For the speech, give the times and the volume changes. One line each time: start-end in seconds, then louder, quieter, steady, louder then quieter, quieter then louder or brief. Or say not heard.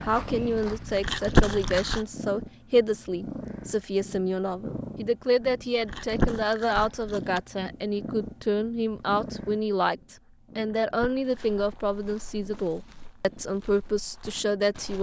0.0-14.9 steady.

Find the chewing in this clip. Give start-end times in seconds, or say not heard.
0.9-2.0, 5.8-7.4, 10.6-11.6.